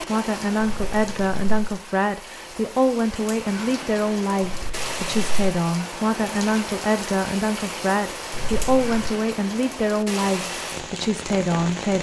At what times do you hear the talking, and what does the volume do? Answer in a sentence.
You can hear the talking from 0.0 to 11.9 s, at a steady volume.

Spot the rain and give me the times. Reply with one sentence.
You can hear the rain from 0.0 to 11.9 s.